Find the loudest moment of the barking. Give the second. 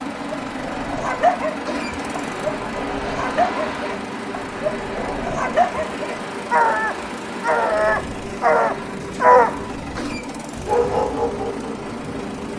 9 s.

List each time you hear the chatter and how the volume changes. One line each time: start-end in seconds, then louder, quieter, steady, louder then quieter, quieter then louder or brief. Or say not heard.
not heard.